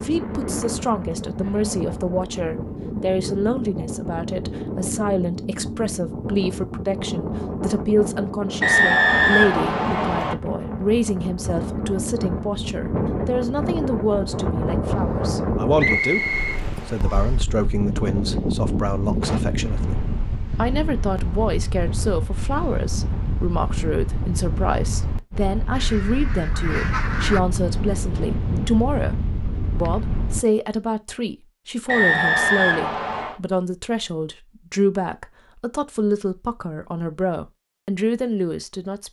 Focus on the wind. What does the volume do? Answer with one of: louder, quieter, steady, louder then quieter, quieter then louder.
steady.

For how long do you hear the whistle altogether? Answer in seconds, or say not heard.
5 s.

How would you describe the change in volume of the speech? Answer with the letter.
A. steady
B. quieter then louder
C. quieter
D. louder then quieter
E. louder
A.